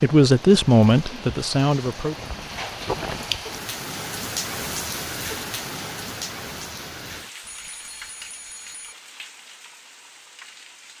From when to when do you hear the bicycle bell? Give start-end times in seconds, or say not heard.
7.4-8.9.